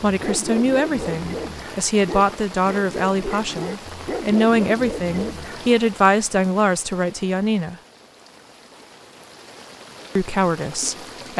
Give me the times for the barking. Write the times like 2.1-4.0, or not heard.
0.1-5.7.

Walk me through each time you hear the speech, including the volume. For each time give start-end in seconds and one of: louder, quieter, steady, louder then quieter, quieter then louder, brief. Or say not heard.
0.0-7.8 steady
10.2-11.3 brief.